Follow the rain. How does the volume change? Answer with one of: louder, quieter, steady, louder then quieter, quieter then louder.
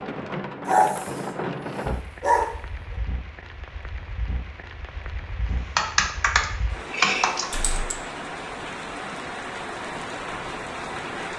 quieter then louder.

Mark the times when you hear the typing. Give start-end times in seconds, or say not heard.
5.8-8.0.